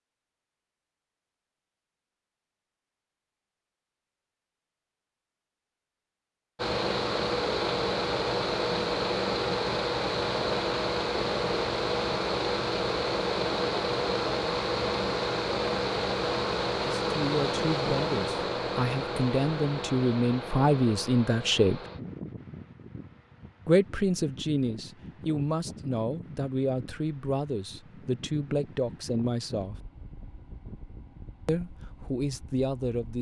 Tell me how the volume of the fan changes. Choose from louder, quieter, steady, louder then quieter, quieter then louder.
quieter.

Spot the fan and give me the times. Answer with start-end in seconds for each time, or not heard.
6.5-33.1.